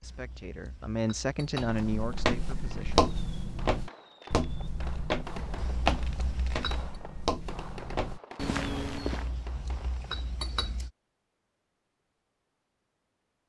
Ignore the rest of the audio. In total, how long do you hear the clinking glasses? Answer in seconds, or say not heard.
5 s.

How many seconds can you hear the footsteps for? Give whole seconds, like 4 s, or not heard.
8 s.